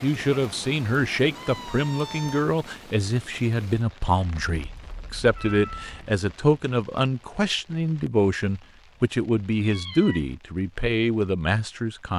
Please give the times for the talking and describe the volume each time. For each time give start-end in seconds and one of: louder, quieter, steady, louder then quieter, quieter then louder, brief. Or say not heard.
0.0-12.1 steady.